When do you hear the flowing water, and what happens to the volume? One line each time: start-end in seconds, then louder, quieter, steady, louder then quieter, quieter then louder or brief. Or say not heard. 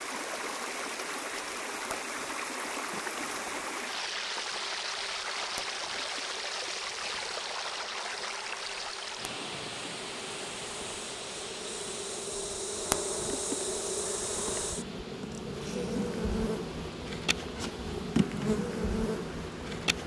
0.0-19.9 quieter.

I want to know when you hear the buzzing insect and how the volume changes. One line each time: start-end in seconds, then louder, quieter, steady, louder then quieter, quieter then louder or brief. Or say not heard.
0.0-20.0 louder.